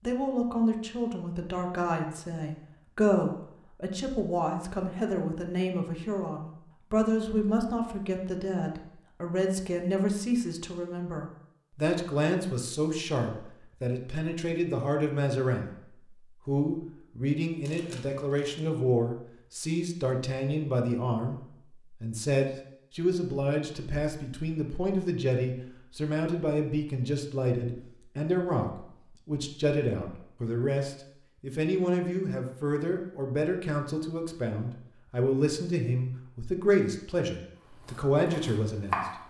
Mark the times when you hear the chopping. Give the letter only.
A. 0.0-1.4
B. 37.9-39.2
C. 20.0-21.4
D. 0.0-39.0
B.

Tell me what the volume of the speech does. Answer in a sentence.
The loudness of the speech stays about the same.